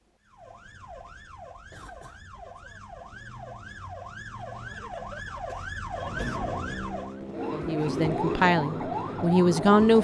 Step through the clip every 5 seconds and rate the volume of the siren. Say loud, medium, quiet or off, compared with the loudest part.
medium, loud.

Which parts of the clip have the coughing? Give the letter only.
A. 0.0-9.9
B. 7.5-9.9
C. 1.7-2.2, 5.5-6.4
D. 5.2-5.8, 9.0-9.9
C.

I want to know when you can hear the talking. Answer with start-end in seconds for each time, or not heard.
7.5-9.9.